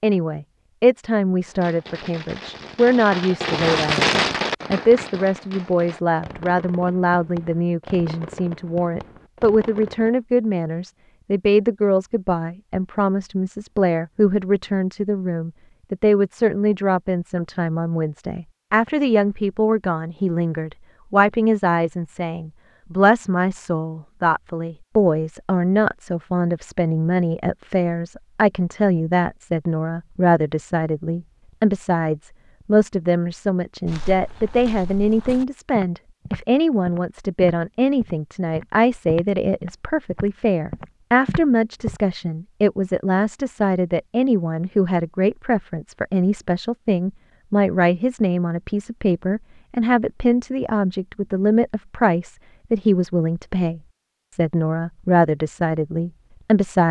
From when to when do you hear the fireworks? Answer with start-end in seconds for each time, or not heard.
1.4-10.2.